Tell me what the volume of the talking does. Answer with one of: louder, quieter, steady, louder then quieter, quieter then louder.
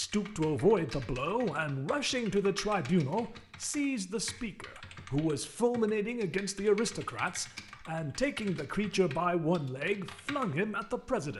steady.